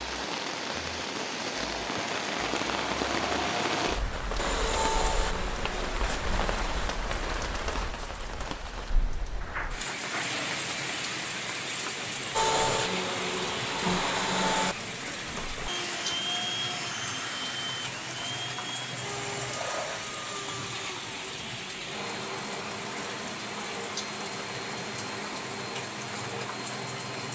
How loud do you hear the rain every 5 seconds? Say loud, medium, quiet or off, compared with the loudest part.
loud, loud, loud, medium, medium, medium.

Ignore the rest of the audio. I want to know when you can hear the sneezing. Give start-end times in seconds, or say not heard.
9.4-10.7.